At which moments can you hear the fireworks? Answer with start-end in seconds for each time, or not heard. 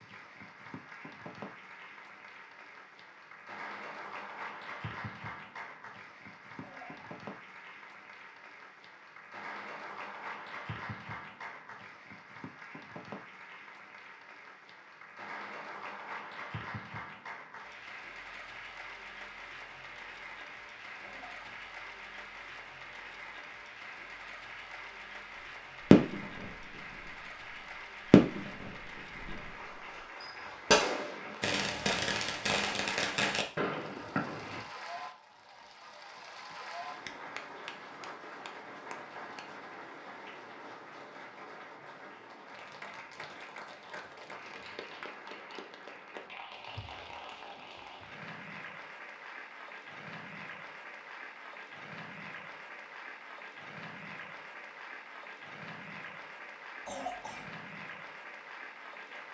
25.8-34.6.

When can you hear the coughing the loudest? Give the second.
57 s.